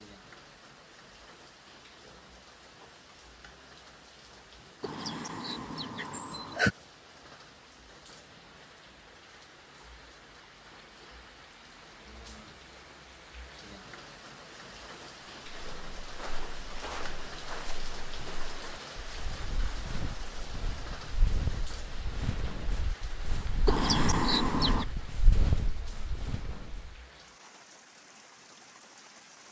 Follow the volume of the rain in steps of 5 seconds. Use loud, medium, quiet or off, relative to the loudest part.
medium, medium, medium, loud, loud, medium.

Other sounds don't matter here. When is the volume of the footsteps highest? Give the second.
25 s.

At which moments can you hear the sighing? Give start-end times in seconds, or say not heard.
4.8-6.8, 23.6-24.9.